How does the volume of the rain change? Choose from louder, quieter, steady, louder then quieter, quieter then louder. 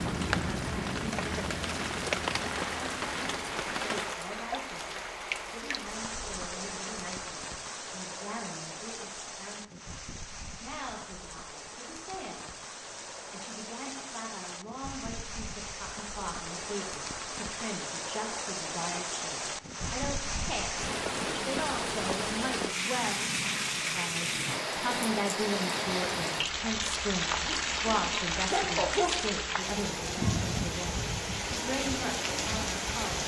quieter then louder.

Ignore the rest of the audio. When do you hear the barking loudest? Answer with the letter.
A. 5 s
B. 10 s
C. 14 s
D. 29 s
D.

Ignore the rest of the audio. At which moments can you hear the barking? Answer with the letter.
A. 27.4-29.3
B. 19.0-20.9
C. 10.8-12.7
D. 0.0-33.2
A.